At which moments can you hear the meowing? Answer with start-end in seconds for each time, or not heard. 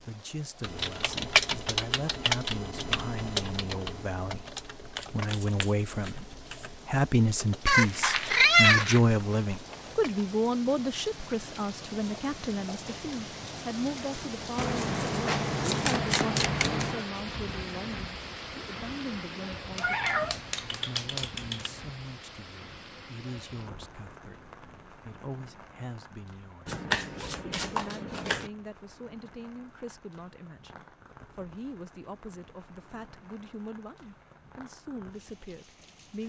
7.7-9.0, 19.8-21.7.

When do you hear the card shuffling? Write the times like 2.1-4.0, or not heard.
5.0-6.8, 14.6-17.1, 26.6-28.5.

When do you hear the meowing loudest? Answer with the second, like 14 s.
9 s.